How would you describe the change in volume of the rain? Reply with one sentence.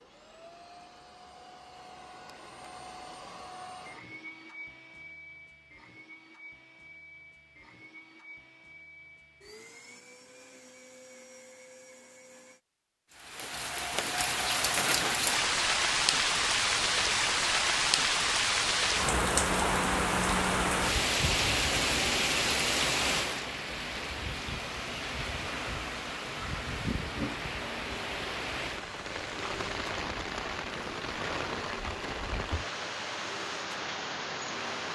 The volume of the rain goes down.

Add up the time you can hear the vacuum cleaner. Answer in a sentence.
The vacuum cleaner can be heard for 23 seconds in total.